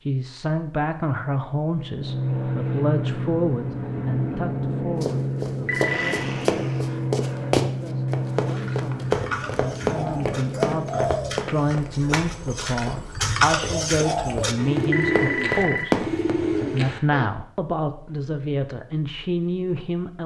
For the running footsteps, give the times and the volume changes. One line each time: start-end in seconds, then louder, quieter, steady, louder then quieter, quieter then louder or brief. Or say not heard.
5.0-16.4 quieter then louder.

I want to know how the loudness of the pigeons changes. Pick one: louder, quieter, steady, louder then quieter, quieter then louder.
louder.